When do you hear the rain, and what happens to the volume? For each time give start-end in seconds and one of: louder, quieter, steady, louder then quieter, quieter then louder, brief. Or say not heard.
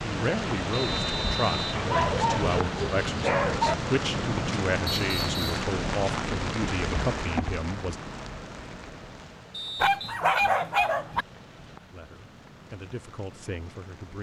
0.0-14.1 quieter.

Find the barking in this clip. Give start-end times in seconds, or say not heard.
1.8-3.8, 9.8-11.2.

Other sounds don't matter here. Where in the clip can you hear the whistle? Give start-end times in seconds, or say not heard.
0.7-1.8, 4.8-5.6, 9.5-10.2.